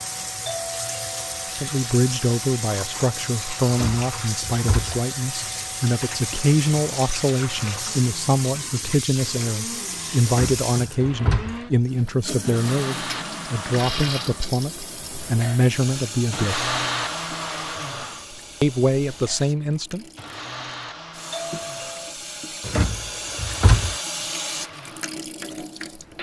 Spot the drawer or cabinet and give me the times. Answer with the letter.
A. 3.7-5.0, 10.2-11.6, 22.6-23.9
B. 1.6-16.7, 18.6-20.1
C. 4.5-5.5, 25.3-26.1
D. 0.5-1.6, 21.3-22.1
A.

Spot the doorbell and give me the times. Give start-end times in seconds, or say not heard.
0.5-1.6, 21.3-22.1.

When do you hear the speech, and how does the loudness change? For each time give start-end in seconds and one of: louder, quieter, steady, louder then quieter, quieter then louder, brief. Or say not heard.
1.6-16.7 steady
18.6-20.1 brief.